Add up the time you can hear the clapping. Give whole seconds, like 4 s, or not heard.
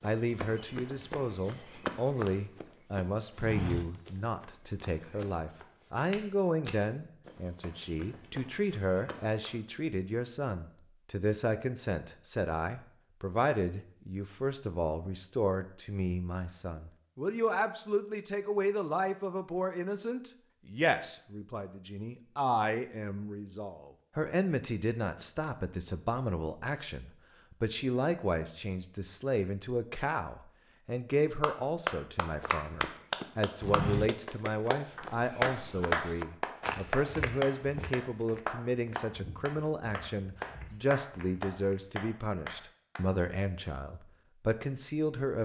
12 s.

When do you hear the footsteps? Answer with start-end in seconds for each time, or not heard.
0.0-9.6, 32.3-41.9.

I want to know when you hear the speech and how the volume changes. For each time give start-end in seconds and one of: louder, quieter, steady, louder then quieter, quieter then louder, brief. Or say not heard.
0.0-45.3 steady.